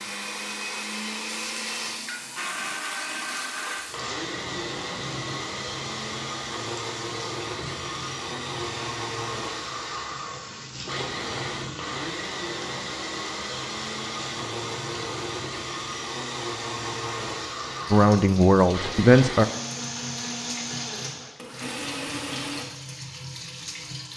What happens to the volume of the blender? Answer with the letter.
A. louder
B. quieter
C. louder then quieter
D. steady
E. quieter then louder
D.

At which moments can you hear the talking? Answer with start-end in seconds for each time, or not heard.
17.9-19.4.